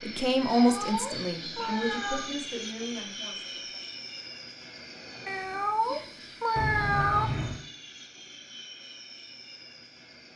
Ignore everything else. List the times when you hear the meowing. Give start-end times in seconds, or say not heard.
0.4-2.3, 5.2-7.3.